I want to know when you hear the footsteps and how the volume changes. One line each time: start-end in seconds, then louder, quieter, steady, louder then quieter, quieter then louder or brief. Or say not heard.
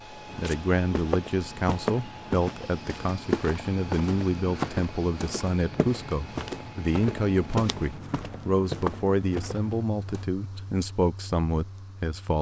0.2-10.2 steady.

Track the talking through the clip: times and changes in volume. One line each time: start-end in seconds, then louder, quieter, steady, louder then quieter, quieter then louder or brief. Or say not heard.
0.3-12.3 steady.